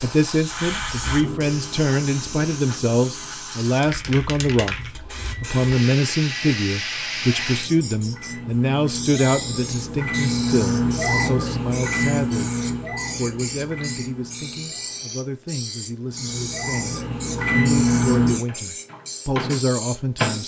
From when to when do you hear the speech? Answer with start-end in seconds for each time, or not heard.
0.0-12.6, 13.2-20.4.